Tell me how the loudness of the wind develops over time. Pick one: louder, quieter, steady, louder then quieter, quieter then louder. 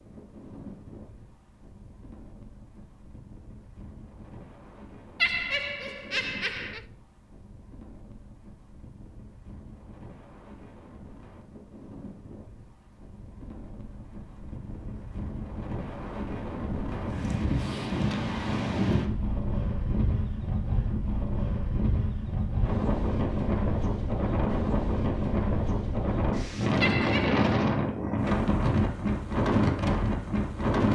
louder.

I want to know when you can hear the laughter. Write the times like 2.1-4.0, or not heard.
5.2-6.8, 26.8-27.4.